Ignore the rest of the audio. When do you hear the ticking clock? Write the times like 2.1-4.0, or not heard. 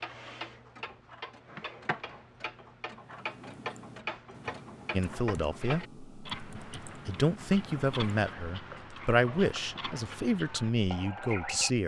0.0-11.8.